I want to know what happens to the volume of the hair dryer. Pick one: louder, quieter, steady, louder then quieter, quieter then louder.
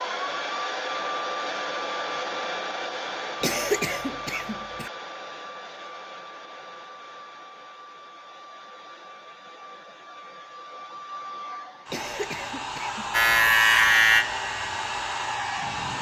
quieter then louder.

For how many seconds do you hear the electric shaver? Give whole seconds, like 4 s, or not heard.
3 s.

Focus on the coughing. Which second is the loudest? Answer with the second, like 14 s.
4 s.